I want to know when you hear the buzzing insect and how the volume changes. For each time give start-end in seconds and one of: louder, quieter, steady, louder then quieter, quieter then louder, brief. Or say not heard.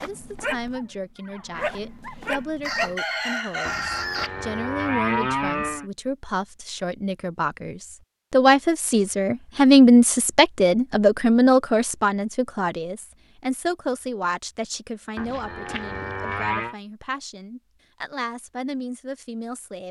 not heard.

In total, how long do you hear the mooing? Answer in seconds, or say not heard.
4 s.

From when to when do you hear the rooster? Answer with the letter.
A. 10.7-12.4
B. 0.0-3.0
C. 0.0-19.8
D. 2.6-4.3
D.